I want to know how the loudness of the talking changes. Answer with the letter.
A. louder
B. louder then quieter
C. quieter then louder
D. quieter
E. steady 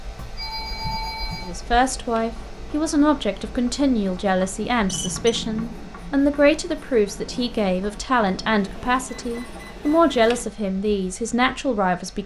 E.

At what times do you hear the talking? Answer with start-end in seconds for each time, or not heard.
1.4-12.2.